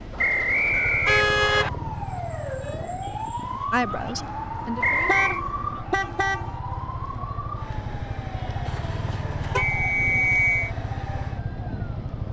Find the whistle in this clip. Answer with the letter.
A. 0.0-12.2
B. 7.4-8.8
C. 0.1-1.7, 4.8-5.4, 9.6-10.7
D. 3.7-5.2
C.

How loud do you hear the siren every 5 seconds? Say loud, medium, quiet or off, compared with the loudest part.
loud, loud, medium.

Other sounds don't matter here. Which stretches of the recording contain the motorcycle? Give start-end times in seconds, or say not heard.
0.0-12.2.